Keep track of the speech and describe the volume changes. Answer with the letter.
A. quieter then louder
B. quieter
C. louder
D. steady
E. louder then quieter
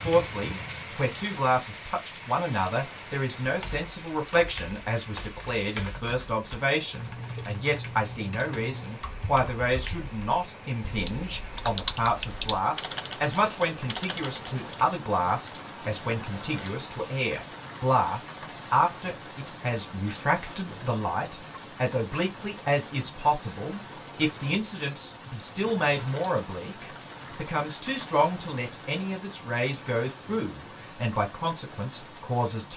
D.